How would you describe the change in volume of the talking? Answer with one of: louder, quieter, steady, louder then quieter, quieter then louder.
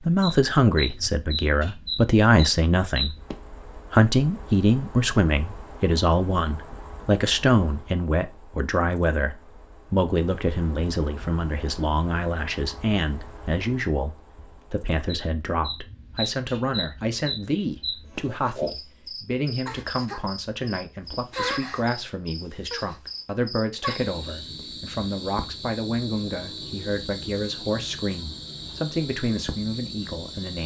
quieter.